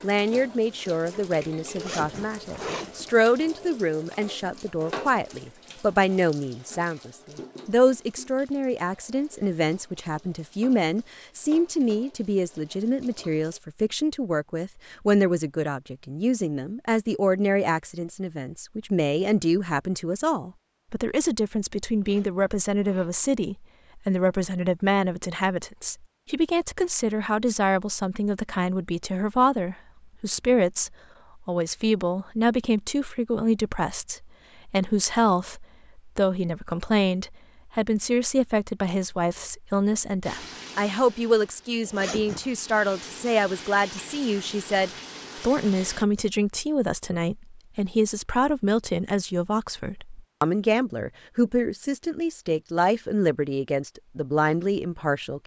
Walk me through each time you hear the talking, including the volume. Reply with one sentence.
The talking can be heard from 0.0 to 55.4 s, at a steady volume.